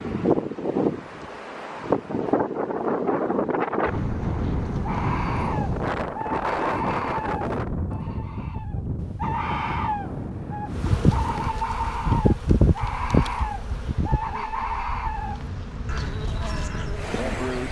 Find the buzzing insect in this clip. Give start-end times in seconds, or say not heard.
10.7-17.6.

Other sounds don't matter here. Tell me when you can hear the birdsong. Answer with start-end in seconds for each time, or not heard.
4.8-17.6.